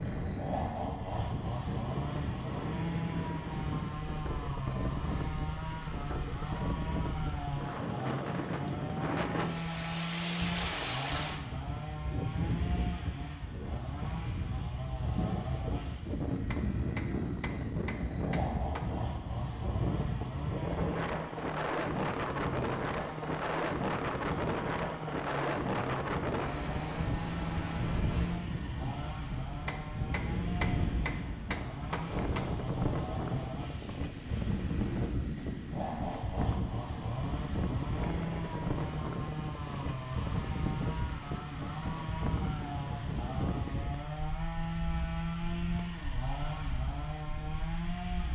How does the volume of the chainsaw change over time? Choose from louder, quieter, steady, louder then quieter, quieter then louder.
steady.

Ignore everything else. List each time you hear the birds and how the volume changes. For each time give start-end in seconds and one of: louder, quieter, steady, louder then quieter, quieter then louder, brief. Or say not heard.
not heard.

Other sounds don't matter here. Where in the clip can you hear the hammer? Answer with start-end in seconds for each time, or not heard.
16.5-19.0, 29.6-32.5.